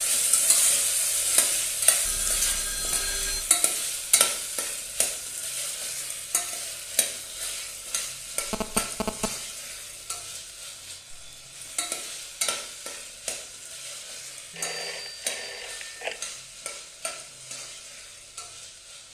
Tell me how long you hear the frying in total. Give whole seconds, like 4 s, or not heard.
19 s.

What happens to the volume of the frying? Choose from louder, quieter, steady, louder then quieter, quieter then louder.
quieter.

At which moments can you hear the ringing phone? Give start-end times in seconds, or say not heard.
2.0-3.5, 8.4-9.3, 14.6-16.2.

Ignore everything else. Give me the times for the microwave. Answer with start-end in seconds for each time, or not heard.
not heard.